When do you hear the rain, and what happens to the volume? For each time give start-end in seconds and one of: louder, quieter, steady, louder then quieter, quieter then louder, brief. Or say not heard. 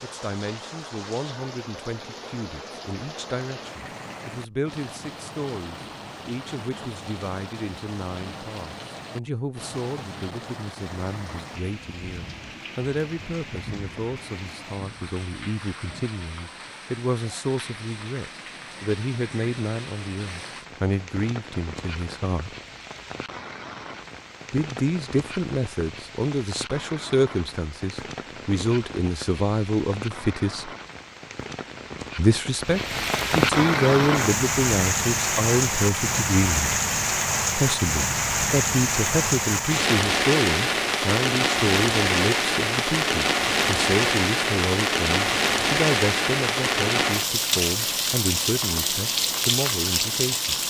0.0-50.6 louder.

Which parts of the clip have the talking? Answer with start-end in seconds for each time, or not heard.
0.0-22.6, 24.5-30.7, 32.1-36.8, 37.5-50.5.